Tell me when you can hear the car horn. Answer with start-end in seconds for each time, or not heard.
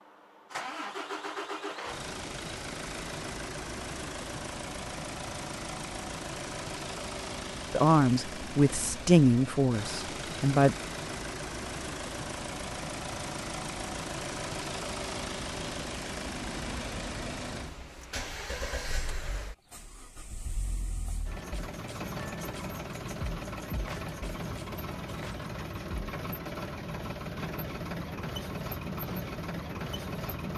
not heard.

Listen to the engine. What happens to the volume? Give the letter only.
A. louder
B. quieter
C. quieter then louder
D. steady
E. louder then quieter
D.